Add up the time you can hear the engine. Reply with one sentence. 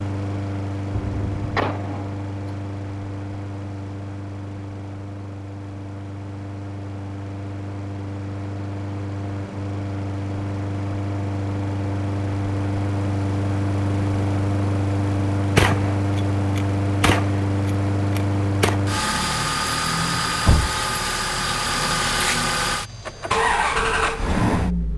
You can hear the engine for 25 seconds altogether.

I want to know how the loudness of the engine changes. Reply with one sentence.
The loudness of the engine goes up.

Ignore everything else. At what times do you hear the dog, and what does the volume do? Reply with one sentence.
You can't hear the dog here.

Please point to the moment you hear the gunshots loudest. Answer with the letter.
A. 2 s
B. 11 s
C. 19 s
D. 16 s
D.